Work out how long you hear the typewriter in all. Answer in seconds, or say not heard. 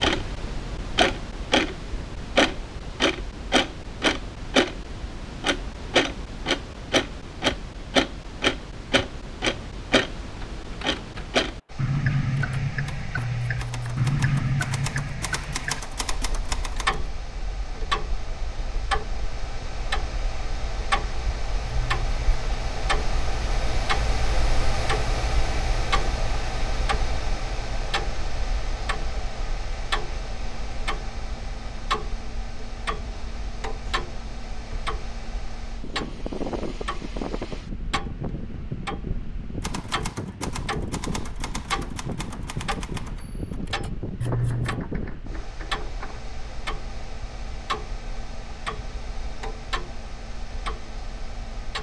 13 s.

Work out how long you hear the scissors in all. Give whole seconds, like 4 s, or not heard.
2 s.